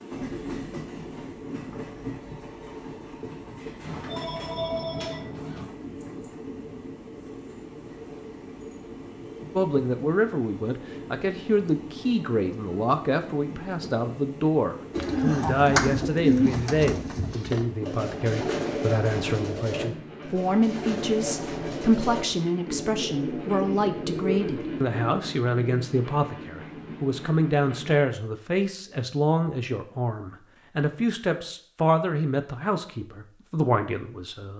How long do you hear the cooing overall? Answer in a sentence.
You can hear the cooing for 10 seconds altogether.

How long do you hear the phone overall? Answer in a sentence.
You can hear the phone for 2 seconds altogether.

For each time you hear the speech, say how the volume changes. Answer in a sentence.
You can hear the speech from 9.6 to 34.5 s, at a steady volume.